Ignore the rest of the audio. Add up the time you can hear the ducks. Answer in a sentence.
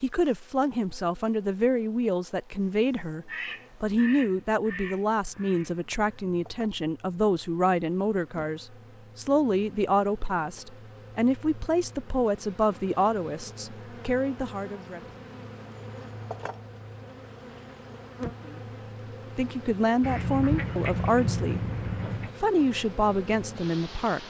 You can hear the ducks for 5 seconds altogether.